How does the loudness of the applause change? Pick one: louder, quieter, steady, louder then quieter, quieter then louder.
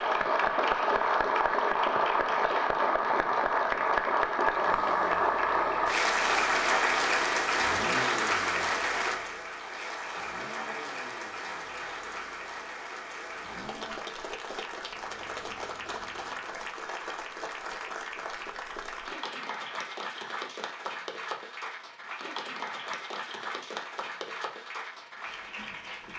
quieter.